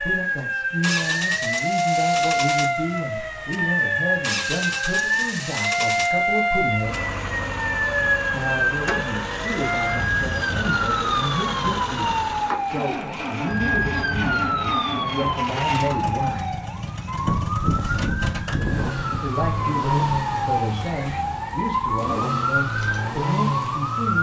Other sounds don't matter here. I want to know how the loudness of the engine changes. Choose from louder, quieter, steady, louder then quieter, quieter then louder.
steady.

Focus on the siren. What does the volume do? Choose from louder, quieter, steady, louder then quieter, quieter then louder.
steady.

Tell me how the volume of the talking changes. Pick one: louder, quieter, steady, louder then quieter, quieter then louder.
steady.